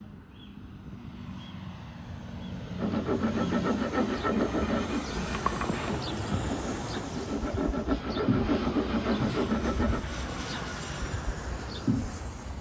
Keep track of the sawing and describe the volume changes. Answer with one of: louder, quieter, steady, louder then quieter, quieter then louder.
quieter then louder.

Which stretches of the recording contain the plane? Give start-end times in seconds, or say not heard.
0.0-12.5.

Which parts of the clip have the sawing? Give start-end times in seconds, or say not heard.
2.8-10.1.